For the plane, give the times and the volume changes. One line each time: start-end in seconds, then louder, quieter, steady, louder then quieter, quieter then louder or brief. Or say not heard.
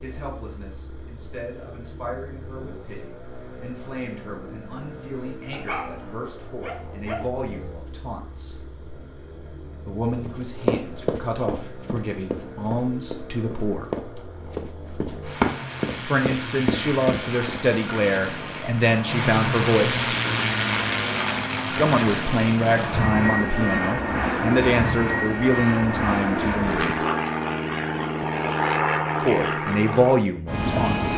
0.0-31.1 louder.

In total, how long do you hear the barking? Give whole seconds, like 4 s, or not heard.
2 s.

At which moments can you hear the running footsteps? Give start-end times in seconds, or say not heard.
10.2-17.6.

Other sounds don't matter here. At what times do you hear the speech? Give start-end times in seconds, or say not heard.
0.0-8.6, 9.8-13.9, 16.1-20.1, 21.7-27.0, 29.2-31.1.